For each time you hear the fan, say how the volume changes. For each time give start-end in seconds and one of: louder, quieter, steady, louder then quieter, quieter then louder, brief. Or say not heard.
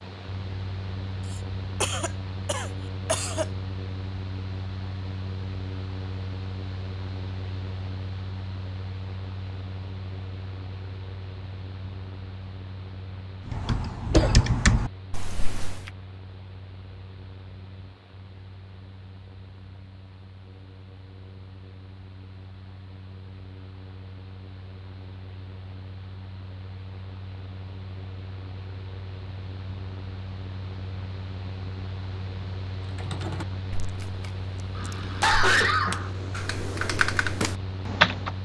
0.0-38.4 quieter then louder.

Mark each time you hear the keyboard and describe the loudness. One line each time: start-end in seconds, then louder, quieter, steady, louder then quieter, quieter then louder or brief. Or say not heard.
13.4-15.8 brief
32.9-38.4 quieter then louder.